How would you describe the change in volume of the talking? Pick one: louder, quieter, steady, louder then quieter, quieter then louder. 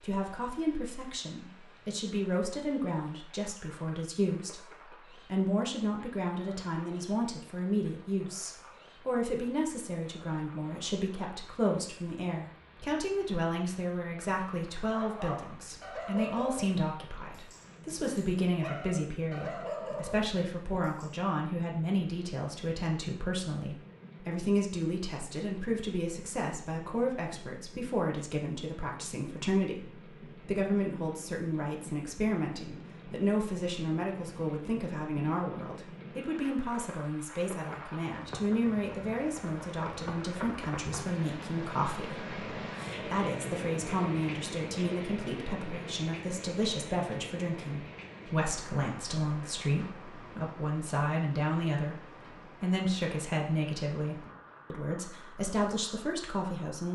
steady.